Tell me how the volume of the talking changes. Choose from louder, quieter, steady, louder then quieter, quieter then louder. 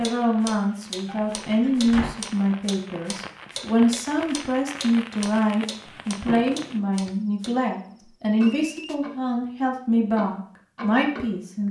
steady.